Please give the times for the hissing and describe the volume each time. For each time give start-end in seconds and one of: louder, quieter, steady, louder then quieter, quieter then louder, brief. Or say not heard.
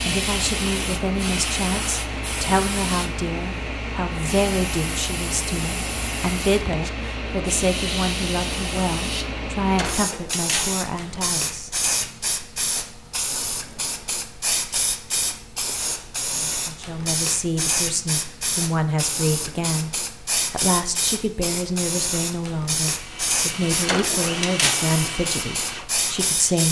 0.0-26.6 steady.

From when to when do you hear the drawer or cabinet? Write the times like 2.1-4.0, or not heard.
9.8-10.8, 23.9-24.9.